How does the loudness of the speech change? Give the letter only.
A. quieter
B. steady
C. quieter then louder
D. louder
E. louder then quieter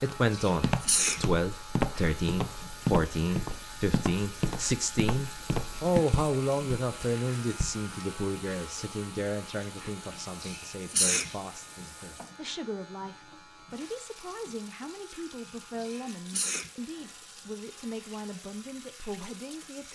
A.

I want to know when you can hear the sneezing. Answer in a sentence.
You can hear the sneezing from 0.3 to 1.3 s, from 10.4 to 11.3 s and from 15.8 to 16.7 s.